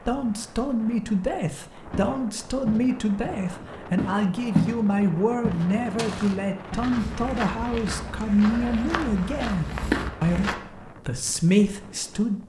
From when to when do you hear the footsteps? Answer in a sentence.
You can hear the footsteps from 1.9 to 10.6 s.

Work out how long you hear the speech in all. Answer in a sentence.
You can hear the speech for 12 seconds altogether.